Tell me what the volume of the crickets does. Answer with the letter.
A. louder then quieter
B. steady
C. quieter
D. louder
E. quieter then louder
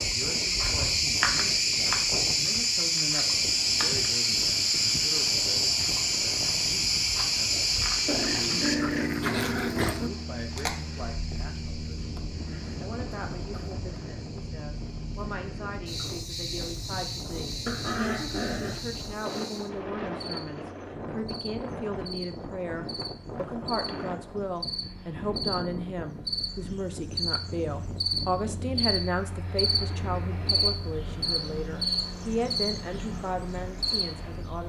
E.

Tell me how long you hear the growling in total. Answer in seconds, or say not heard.
3 s.